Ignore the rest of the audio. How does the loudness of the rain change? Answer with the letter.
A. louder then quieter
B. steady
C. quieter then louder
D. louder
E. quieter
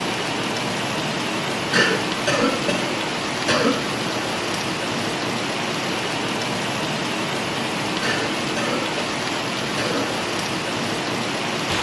B.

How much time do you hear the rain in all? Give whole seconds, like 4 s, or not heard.
12 s.